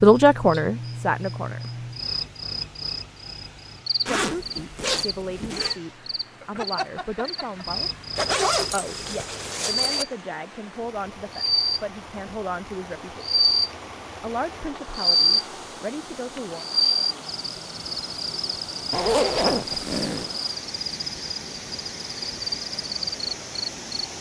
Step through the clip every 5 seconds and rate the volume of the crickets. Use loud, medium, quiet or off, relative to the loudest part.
medium, medium, loud, loud, medium.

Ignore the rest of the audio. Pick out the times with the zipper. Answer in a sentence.
You can hear the zipper from 4.0 to 5.8 s, from 8.2 to 10.1 s and from 18.9 to 20.4 s.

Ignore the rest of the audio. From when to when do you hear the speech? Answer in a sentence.
You can hear the speech from 0.0 to 1.7 s, from 4.1 to 7.9 s, from 8.7 to 13.4 s and from 14.2 to 16.6 s.